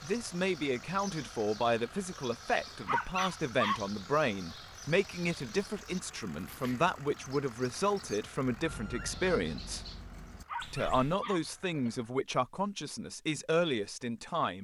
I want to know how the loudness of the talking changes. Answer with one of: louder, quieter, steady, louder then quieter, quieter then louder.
steady.